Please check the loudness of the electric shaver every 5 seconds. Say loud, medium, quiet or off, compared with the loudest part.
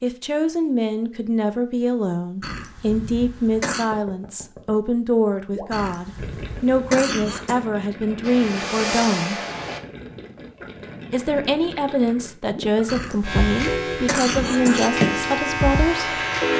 off, off, loud, loud.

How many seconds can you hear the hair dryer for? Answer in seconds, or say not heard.
3 s.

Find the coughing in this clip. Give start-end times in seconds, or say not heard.
2.4-3.9, 5.7-7.5, 12.8-14.9.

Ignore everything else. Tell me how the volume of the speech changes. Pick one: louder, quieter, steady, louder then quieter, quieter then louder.
steady.